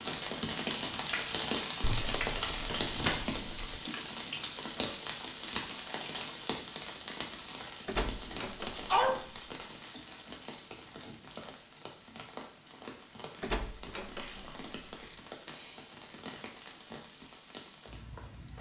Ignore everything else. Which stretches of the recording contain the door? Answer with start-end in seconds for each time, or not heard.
1.8-3.8, 7.8-9.4, 13.4-15.2.